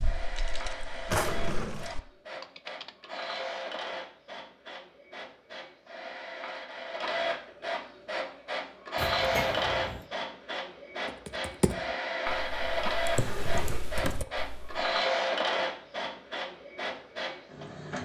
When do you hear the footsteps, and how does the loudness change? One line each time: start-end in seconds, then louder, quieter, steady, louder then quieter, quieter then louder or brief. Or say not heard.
not heard.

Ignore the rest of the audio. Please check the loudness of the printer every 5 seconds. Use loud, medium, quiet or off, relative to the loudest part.
medium, loud, loud, loud.